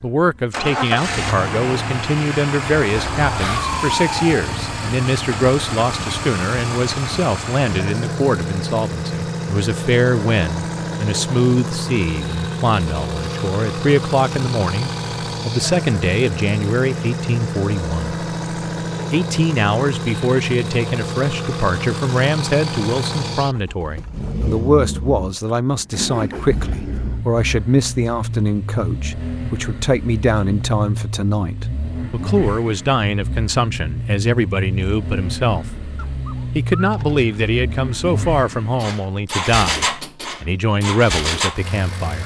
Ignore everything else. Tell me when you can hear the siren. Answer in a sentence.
You can hear the siren from 2.9 to 4.5 s.